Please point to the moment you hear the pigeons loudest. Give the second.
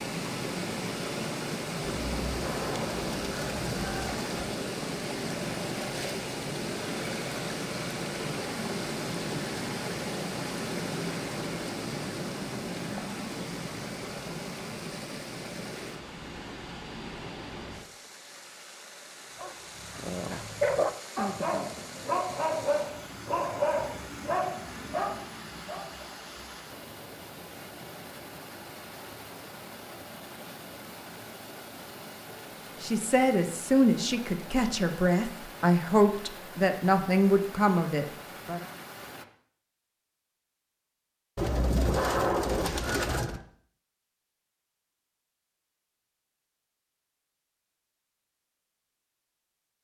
42 s.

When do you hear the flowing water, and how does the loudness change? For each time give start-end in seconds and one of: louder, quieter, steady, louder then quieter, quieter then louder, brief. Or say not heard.
0.0-39.2 quieter.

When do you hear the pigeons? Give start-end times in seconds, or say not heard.
1.9-4.5, 41.4-43.4.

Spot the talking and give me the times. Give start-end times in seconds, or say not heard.
32.8-38.6.